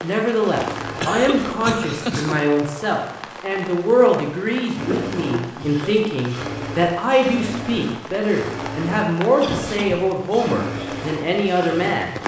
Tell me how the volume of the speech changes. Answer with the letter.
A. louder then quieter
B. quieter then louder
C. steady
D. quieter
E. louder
C.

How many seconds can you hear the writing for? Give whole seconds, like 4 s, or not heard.
not heard.